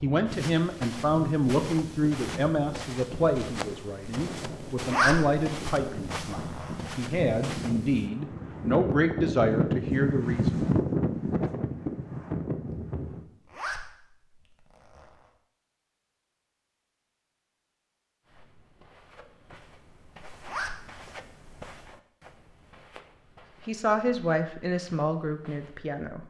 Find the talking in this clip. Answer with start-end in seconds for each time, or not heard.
0.0-10.7, 23.6-26.2.